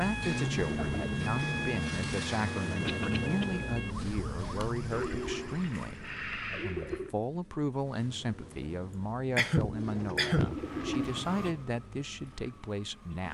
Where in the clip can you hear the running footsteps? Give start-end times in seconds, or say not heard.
not heard.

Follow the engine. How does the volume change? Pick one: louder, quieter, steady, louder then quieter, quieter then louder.
quieter.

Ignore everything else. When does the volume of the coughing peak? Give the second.
10 s.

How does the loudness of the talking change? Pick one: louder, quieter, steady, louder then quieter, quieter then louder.
steady.